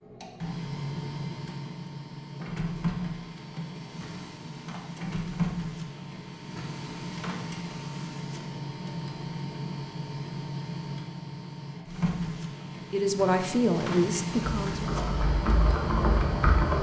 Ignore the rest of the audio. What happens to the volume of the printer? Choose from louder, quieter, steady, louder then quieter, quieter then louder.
steady.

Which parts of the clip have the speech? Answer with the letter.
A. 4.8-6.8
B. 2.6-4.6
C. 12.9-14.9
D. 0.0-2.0
C.